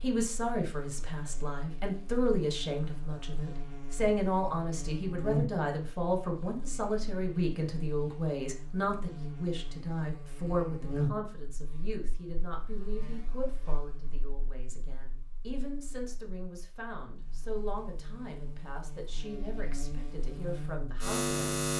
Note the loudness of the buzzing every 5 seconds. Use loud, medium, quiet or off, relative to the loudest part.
quiet, medium, medium, quiet, loud.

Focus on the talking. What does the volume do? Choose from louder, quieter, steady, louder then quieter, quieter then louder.
quieter.